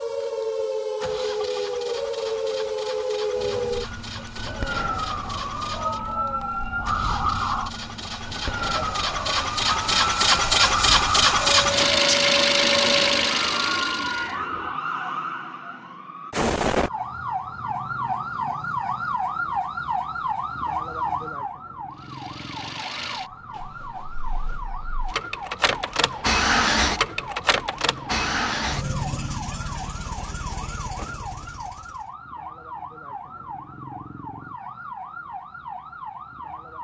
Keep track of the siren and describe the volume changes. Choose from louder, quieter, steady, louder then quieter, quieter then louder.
quieter.